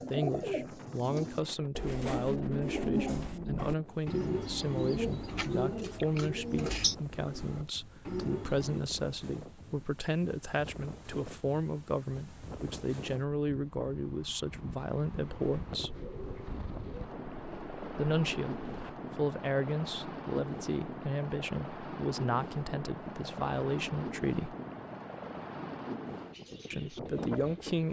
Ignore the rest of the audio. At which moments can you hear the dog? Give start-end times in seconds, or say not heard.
not heard.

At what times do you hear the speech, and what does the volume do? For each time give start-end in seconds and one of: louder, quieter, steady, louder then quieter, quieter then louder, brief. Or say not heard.
0.1-16.0 steady
17.9-24.6 steady
26.7-27.8 brief.